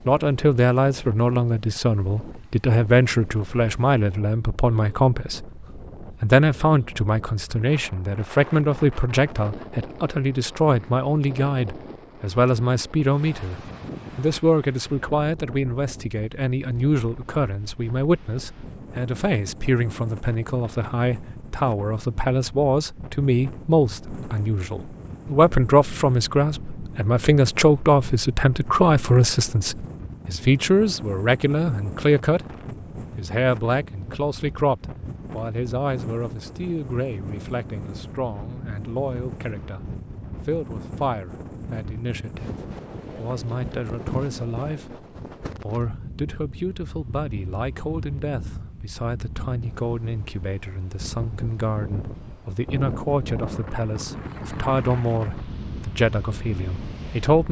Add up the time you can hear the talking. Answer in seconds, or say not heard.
56 s.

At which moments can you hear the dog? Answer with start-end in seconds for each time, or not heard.
not heard.